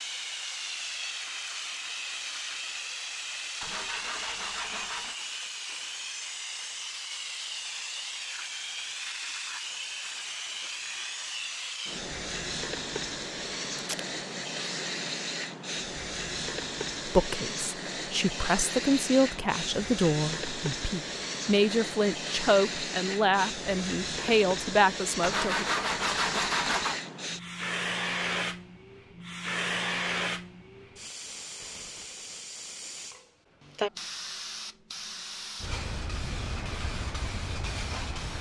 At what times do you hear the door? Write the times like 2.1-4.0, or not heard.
not heard.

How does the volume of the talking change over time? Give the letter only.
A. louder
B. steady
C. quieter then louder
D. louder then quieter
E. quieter
B.